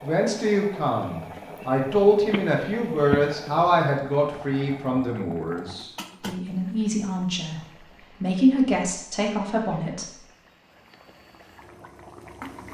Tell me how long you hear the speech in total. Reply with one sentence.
You can hear the speech for 10 seconds altogether.